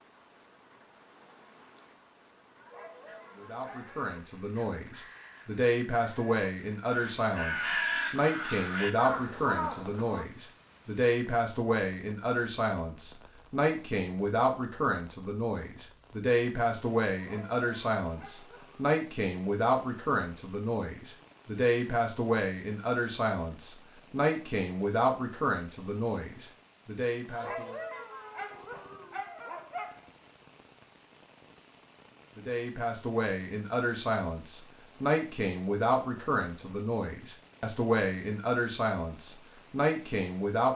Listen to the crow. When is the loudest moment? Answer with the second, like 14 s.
8 s.